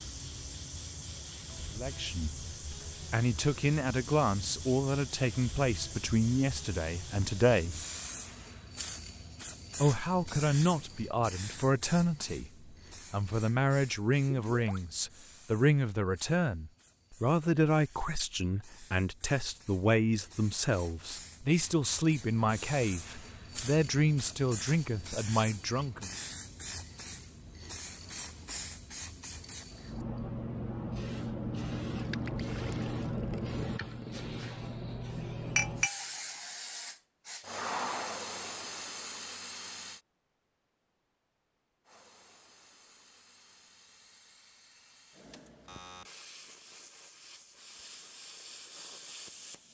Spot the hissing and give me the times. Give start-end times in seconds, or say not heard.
0.0-40.0, 41.9-49.6.